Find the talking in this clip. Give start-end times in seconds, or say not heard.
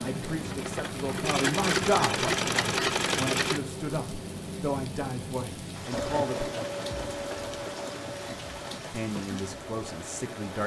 0.0-6.5, 8.9-10.6.